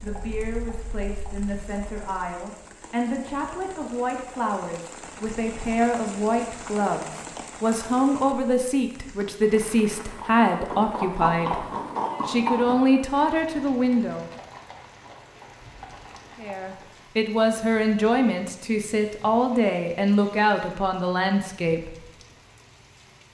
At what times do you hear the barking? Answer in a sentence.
The barking can't be heard in this clip.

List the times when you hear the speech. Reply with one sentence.
You can hear the speech from 0.0 to 11.7 s, from 12.2 to 14.2 s and from 16.4 to 22.0 s.